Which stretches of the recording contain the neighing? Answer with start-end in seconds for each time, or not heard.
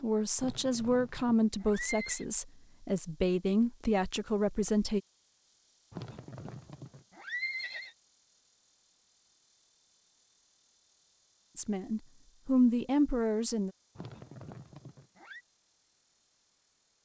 0.3-2.2, 5.9-8.0, 13.9-15.4.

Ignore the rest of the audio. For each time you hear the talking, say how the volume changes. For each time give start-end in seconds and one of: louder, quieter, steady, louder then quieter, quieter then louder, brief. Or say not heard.
0.0-5.0 quieter then louder
11.6-13.7 brief.